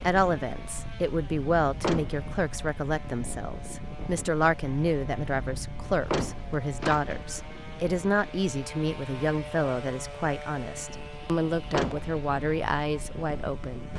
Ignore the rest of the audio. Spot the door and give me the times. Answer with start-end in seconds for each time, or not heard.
1.6-2.2, 5.8-7.3, 11.7-12.1.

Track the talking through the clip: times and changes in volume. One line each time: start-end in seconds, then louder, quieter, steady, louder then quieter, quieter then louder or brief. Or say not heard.
0.0-13.9 steady.